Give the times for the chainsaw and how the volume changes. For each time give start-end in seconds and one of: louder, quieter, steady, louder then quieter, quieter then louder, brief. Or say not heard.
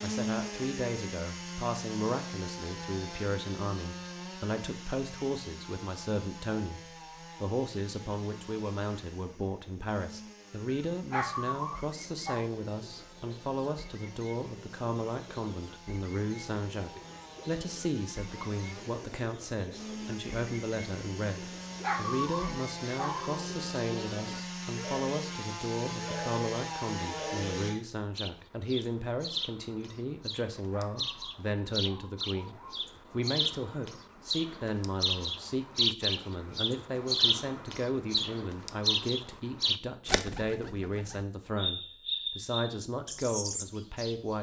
0.0-27.8 quieter then louder.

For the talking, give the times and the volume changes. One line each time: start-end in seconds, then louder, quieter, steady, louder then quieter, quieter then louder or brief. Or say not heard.
0.0-44.3 steady.